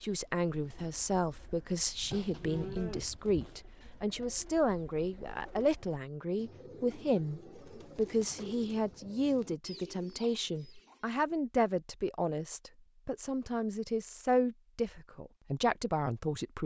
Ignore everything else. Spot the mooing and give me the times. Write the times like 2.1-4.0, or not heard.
2.1-3.6.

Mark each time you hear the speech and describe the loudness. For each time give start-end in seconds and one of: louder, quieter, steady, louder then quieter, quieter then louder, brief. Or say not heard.
0.0-16.6 steady.